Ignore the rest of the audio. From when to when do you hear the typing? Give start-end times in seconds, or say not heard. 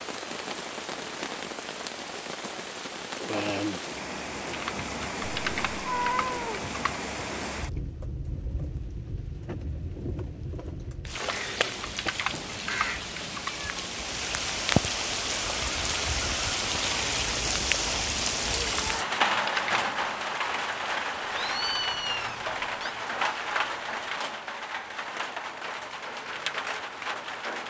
4.5-7.0, 11.1-13.6, 18.6-20.0.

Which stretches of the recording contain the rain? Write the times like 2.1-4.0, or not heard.
0.0-27.6.